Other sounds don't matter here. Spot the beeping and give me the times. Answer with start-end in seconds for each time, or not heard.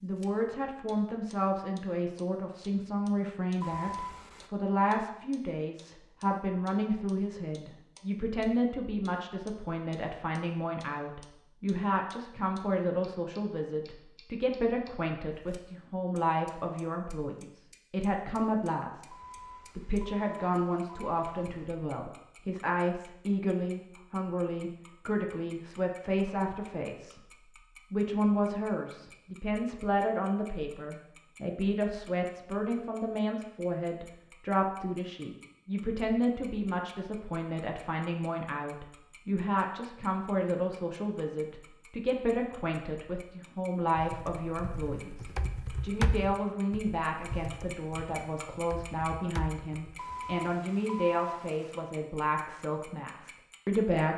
3.6-4.5, 19.1-21.7, 50.0-51.9.